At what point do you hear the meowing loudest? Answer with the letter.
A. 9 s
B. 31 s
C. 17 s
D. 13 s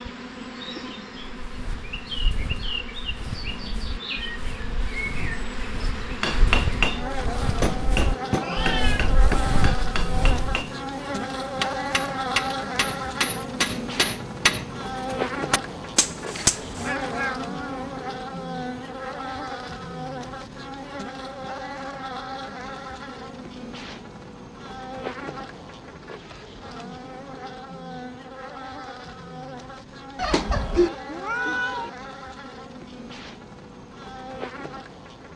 B.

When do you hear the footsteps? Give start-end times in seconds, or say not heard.
1.4-10.7.